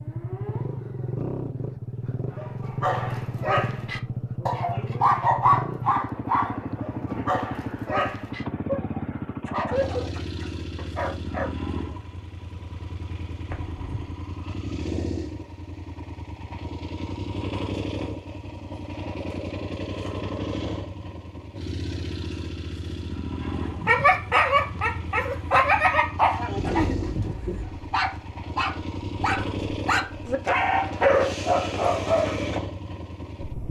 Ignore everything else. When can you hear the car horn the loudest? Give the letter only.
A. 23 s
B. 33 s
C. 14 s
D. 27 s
D.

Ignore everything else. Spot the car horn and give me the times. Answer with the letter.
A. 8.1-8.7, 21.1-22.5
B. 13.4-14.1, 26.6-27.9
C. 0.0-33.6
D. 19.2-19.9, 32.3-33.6
B.